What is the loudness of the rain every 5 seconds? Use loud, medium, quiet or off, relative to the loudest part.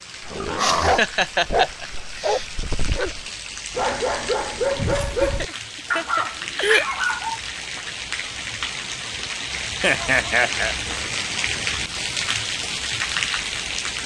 medium, medium, loud.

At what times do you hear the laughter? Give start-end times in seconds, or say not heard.
0.6-2.5, 4.8-6.8, 9.8-10.8.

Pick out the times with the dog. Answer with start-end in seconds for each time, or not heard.
0.2-7.4.